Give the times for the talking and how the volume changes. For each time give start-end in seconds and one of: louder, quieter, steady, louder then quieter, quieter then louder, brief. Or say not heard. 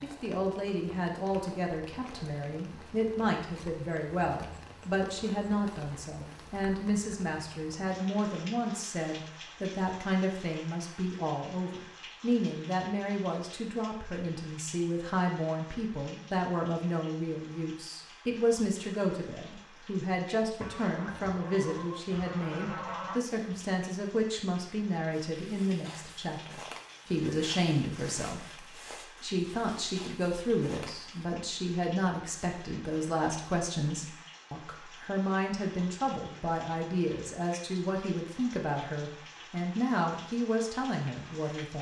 0.0-41.7 steady.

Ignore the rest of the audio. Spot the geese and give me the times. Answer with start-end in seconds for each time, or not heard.
20.6-23.2.